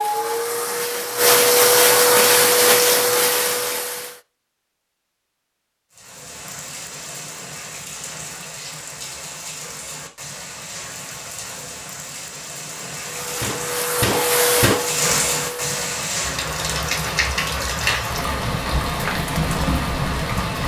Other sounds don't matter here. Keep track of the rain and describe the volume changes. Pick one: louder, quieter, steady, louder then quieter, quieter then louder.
louder.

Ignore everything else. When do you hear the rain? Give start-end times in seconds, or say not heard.
5.9-20.6.